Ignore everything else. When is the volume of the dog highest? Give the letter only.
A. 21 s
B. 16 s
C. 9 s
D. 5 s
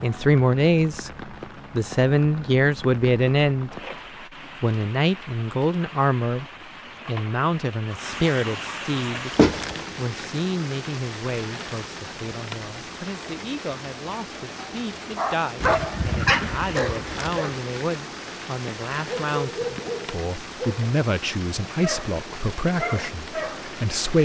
B.